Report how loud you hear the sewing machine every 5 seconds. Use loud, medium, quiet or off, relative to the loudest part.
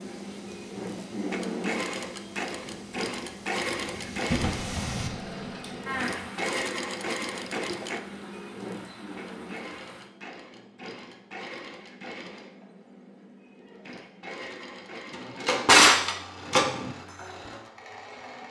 loud, loud, medium, medium.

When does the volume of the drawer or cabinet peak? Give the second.
16 s.